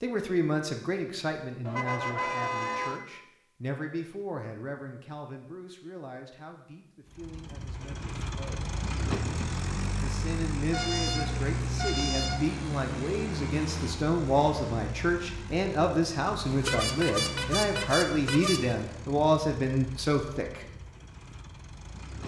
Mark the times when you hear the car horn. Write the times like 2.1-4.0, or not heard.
1.6-3.0, 10.7-12.5, 16.4-18.8.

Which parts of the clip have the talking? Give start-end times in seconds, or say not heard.
0.0-8.7, 10.0-20.6.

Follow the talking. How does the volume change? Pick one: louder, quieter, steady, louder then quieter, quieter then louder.
quieter then louder.